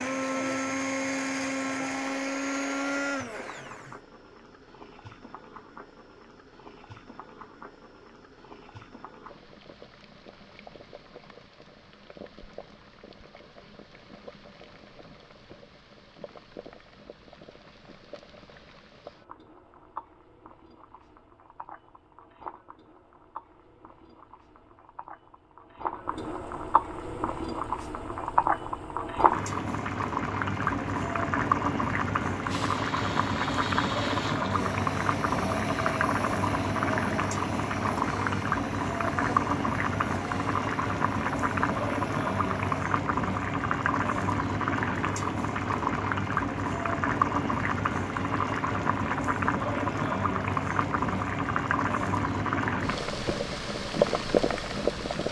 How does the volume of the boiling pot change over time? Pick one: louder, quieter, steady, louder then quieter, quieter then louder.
louder.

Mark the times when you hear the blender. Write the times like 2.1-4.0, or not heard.
0.0-4.0, 32.5-42.9.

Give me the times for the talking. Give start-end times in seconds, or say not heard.
not heard.